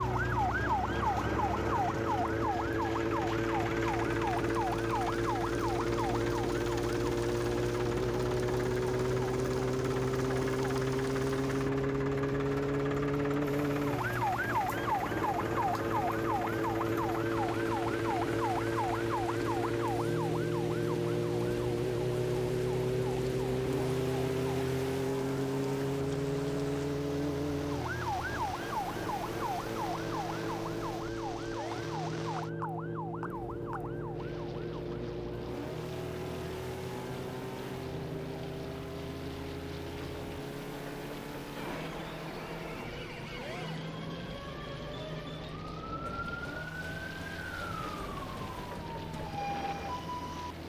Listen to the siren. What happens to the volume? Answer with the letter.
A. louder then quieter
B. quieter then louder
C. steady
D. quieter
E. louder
D.